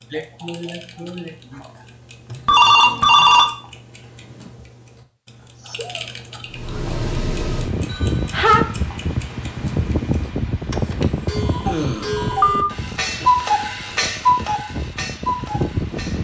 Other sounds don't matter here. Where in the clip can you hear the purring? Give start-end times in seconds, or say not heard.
not heard.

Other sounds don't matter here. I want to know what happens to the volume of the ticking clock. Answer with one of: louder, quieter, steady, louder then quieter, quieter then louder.
louder.